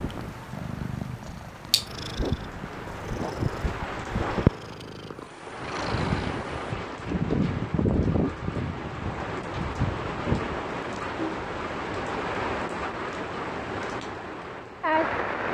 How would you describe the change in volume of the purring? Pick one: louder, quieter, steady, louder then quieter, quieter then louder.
quieter.